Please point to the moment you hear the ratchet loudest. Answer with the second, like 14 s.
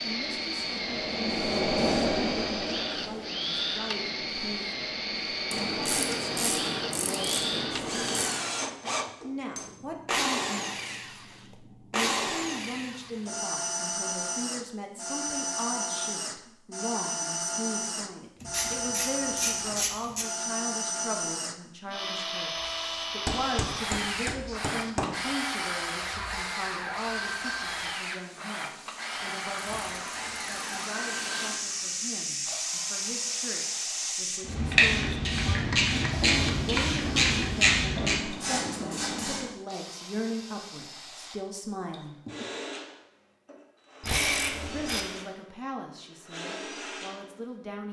44 s.